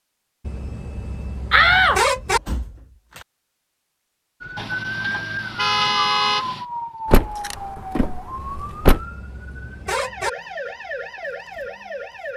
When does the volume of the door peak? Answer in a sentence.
The volume of the door peaks at 2 seconds.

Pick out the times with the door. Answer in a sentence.
The door can be heard from 1.5 to 2.7 s and from 7.1 to 9.0 s.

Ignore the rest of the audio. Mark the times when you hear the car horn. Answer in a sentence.
The car horn can be heard from 0.5 to 2.4 s, from 4.5 to 6.7 s and from 8.3 to 10.3 s.